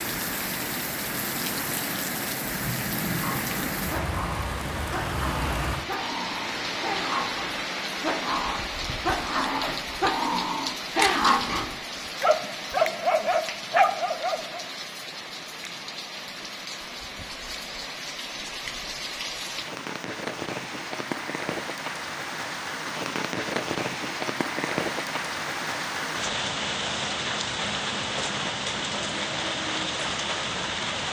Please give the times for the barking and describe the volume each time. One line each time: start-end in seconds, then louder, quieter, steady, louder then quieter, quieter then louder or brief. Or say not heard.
3.1-14.7 louder.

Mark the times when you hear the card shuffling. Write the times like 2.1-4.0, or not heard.
11.0-11.6.